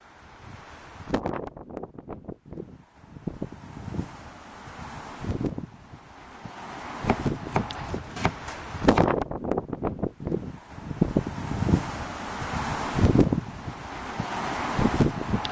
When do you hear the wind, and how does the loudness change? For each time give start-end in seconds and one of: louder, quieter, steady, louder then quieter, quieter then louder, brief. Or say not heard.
0.0-15.4 louder.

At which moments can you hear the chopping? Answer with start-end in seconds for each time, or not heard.
7.0-9.2.